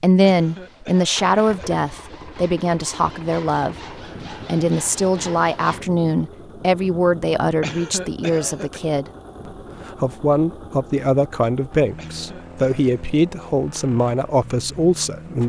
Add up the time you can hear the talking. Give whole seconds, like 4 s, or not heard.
15 s.